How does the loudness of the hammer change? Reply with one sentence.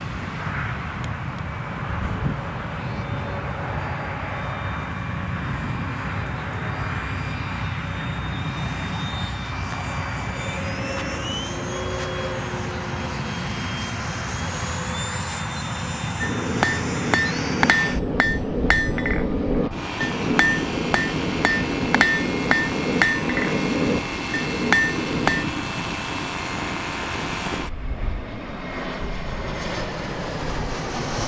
The volume of the hammer stays about the same.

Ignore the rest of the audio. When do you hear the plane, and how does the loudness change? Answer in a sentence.
The plane can be heard from 0.0 to 31.2 s, at a steady volume.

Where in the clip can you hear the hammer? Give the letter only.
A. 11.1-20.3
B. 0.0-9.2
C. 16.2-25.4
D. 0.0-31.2
C.